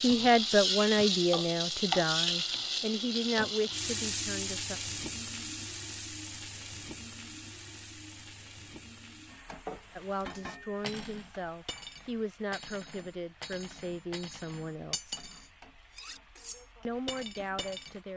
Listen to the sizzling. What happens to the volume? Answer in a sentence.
The volume of the sizzling goes down.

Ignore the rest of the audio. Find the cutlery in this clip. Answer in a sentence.
You can hear the cutlery from 9.7 to 18.0 s.